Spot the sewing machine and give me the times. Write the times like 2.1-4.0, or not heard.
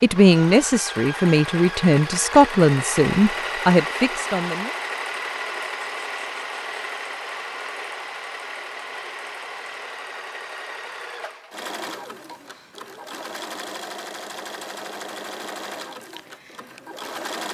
0.0-17.4.